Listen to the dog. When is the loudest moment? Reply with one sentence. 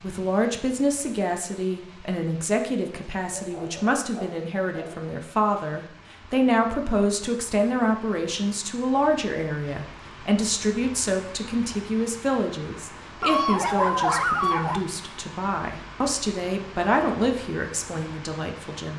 The loudest moment of the dog is at 14 seconds.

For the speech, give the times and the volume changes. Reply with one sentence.
You can hear the speech from 0.0 to 18.9 s, at a steady volume.